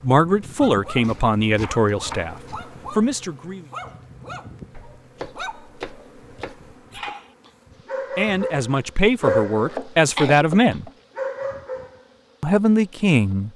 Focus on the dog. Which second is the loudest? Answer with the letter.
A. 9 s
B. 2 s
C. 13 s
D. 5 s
A.